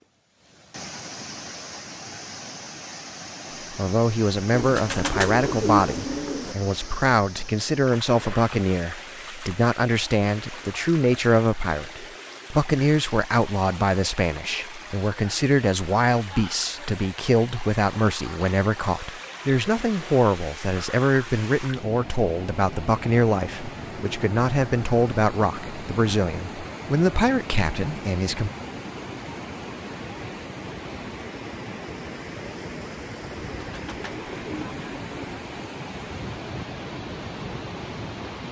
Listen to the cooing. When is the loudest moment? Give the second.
6 s.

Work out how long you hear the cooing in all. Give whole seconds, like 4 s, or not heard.
4 s.